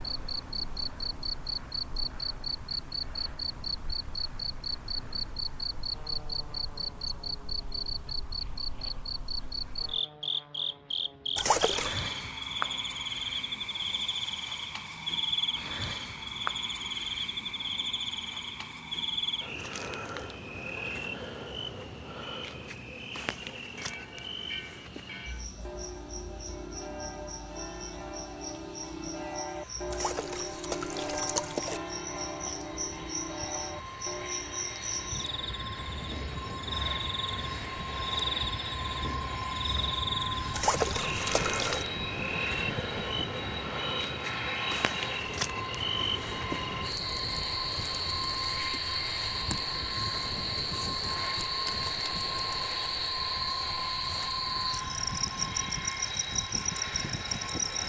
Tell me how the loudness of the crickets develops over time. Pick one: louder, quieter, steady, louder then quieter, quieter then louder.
quieter then louder.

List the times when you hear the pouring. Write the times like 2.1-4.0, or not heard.
11.3-12.0, 29.9-31.8, 40.5-41.9.